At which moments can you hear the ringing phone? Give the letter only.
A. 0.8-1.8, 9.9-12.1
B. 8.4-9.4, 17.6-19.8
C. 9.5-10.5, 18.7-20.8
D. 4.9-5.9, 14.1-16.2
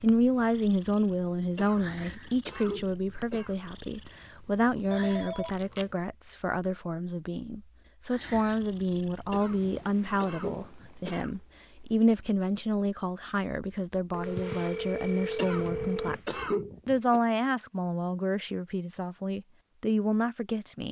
D.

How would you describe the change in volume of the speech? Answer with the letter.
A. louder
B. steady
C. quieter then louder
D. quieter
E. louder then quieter
B.